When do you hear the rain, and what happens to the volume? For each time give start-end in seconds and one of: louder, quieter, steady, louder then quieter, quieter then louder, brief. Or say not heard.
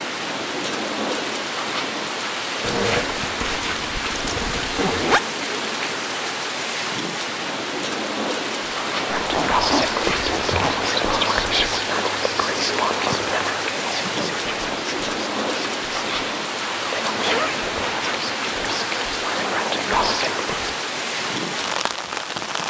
0.0-22.6 steady.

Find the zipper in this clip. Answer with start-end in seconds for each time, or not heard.
2.6-5.2, 9.1-10.9, 17.1-17.8.